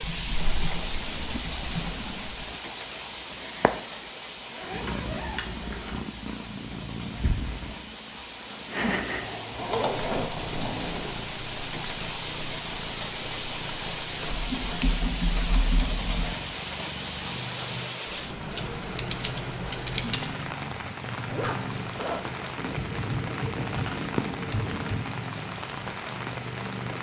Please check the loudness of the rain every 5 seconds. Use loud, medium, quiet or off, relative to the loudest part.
loud, medium, loud, loud, loud, loud.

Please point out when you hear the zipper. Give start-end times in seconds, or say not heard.
4.5-6.0, 9.6-11.2, 21.2-22.3.